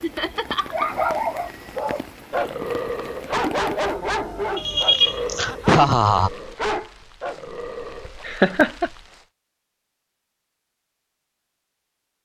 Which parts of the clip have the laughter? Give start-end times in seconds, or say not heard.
0.0-0.9, 4.5-6.3, 8.2-8.9.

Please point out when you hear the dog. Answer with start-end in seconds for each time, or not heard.
0.7-8.2.